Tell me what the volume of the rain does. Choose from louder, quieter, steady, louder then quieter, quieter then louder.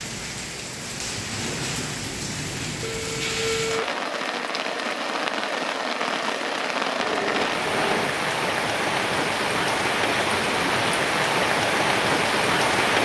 louder.